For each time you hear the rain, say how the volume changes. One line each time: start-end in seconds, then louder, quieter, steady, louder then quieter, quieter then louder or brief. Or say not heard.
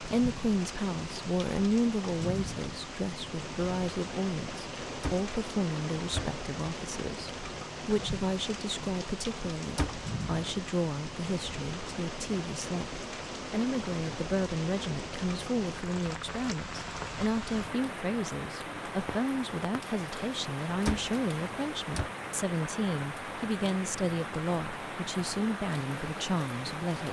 0.0-27.0 steady.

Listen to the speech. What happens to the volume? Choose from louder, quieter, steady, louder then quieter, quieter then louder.
steady.